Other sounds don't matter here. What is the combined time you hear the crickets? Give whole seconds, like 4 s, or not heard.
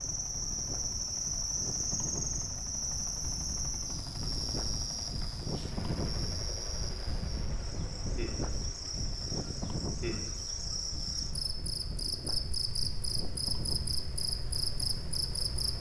16 s.